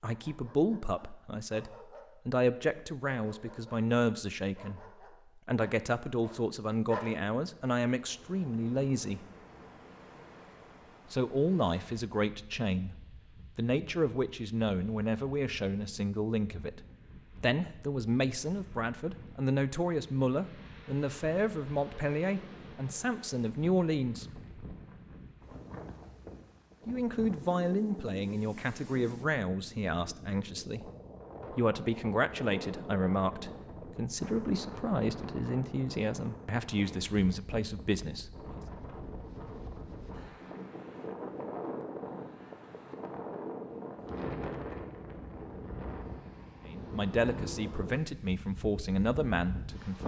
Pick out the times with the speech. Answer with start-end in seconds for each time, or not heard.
0.0-4.8, 5.5-9.2, 11.1-24.4, 26.9-30.9, 31.5-38.6, 46.6-50.0.